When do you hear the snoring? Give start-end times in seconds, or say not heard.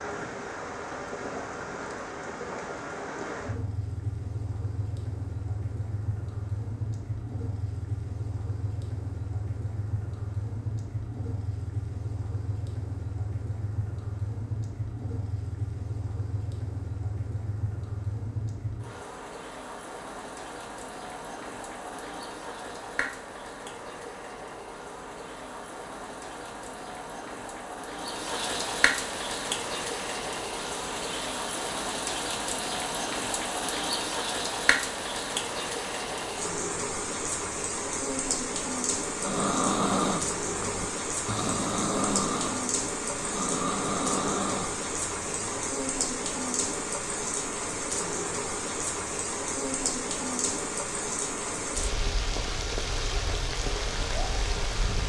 39.2-45.6.